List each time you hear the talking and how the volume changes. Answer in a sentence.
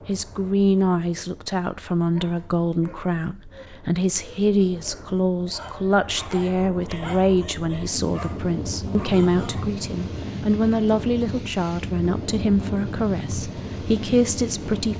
You can hear the talking from 0.1 to 14.9 s, at a steady volume.